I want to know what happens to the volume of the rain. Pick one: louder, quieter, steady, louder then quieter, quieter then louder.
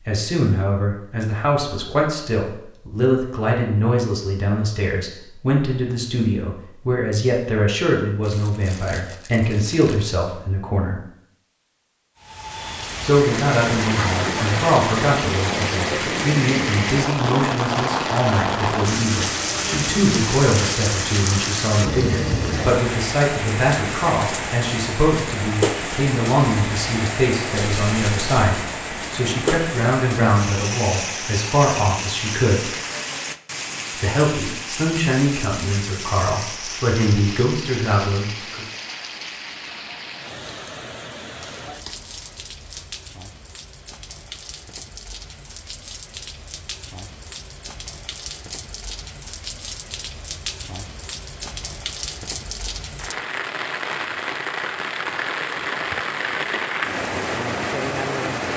quieter then louder.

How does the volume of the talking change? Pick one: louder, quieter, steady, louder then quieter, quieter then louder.
steady.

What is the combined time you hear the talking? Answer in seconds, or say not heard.
35 s.